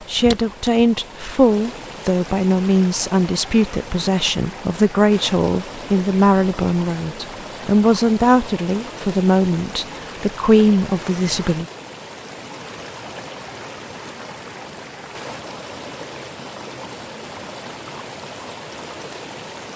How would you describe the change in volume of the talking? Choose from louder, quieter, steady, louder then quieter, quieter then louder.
steady.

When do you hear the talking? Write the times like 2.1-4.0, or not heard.
0.1-11.7.